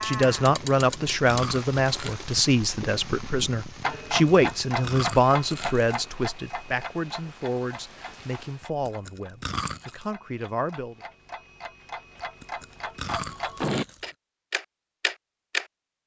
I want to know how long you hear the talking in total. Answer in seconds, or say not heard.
11 s.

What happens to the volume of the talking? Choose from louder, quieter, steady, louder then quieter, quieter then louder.
quieter.